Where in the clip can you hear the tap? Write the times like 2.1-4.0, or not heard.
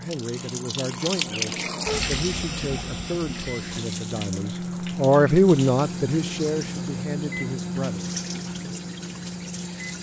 0.0-9.9.